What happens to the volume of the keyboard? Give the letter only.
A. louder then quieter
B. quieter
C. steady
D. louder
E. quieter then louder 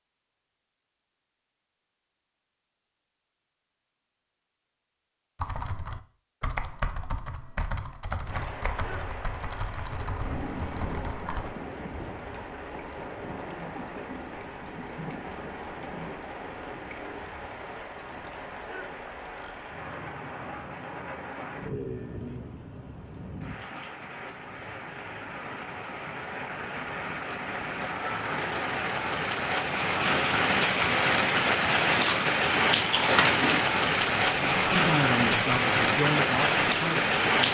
B.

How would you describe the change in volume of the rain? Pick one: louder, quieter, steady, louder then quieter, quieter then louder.
louder.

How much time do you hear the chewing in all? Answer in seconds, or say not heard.
2 s.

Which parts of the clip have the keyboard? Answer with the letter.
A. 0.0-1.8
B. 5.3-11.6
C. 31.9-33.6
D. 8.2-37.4
B.